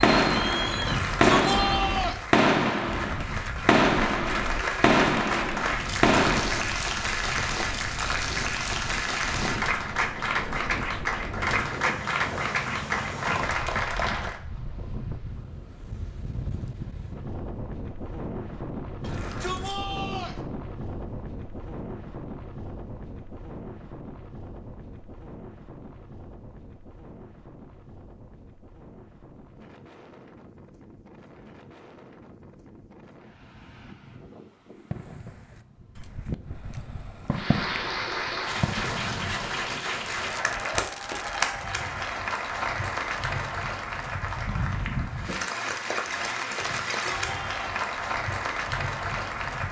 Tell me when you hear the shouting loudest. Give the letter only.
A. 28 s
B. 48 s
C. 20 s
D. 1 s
D.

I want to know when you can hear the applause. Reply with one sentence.
The applause can be heard from 0.0 to 14.4 s and from 37.3 to 49.6 s.